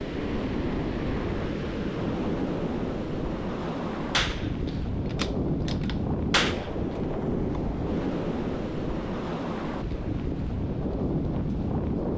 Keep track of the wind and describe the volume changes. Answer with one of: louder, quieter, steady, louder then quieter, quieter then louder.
steady.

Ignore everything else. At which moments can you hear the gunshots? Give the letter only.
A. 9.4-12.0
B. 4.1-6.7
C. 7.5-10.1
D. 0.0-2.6
B.